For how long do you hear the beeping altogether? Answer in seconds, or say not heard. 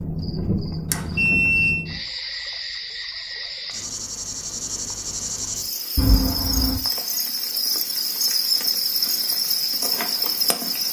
2 s.